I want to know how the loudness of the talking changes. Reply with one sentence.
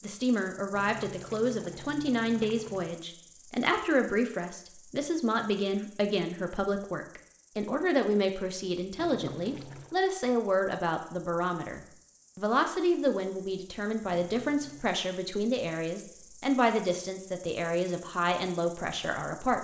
The loudness of the talking stays about the same.